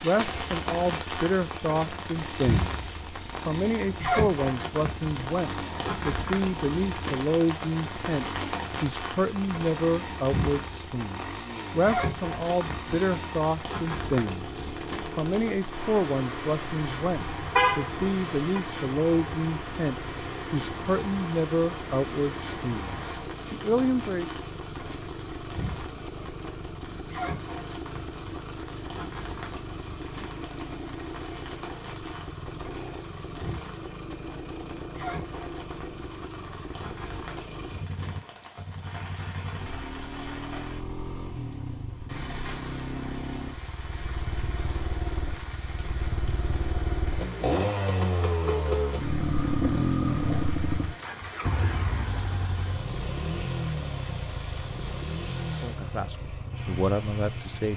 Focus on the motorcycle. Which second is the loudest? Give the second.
50 s.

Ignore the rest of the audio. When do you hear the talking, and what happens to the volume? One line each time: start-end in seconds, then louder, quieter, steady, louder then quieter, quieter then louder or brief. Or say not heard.
0.0-24.3 steady
55.5-57.7 brief.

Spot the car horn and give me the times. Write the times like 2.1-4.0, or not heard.
17.6-18.6.